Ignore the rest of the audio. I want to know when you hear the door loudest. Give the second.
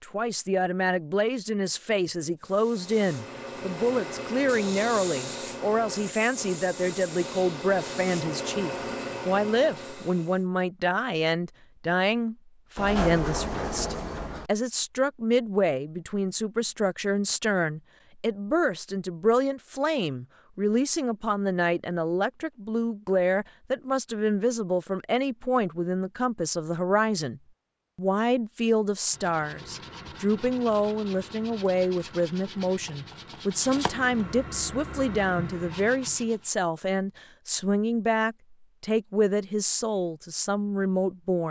13 s.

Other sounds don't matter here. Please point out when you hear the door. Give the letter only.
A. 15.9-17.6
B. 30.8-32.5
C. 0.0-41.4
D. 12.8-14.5
D.